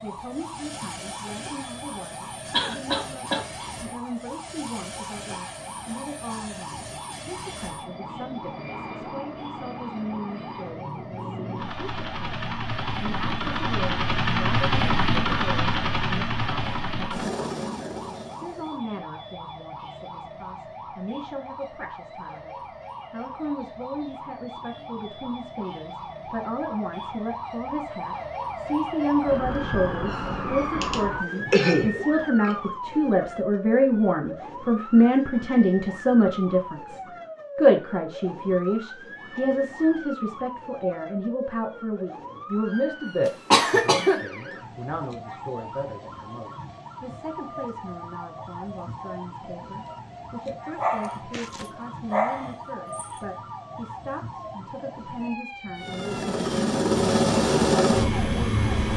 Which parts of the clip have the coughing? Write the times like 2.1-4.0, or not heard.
2.5-3.5, 30.8-32.5, 43.2-44.2.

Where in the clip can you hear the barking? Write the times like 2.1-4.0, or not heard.
50.8-53.2.